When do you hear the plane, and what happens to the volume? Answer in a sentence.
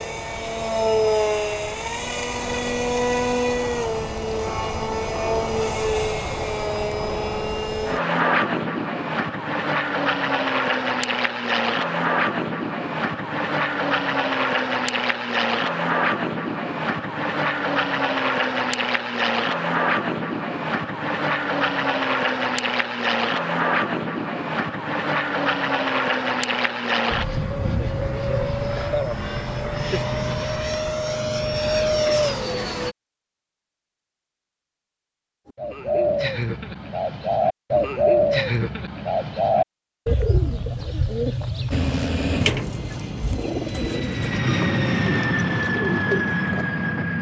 The plane can be heard from 0.0 to 33.0 s, at a steady volume; and from 41.7 to 47.1 s, getting quieter then louder.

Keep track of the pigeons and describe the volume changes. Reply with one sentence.
The volume of the pigeons goes down.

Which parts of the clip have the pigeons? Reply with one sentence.
You can hear the pigeons from 35.5 to 46.9 s.